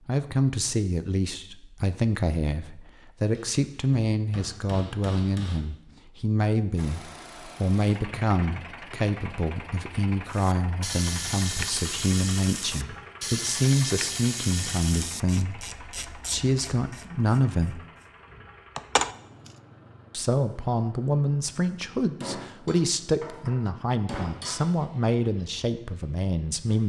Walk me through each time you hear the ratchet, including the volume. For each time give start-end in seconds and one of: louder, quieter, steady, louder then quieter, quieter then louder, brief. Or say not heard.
10.2-19.6 quieter then louder.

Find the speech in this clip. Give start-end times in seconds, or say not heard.
0.1-17.8, 20.1-26.8.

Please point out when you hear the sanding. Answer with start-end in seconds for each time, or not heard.
not heard.